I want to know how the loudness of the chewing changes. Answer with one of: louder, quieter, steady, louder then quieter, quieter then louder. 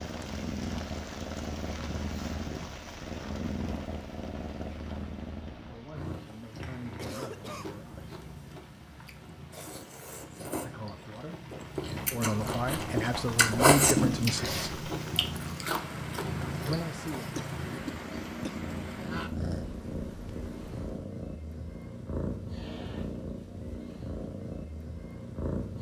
louder then quieter.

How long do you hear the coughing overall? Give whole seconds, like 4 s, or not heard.
2 s.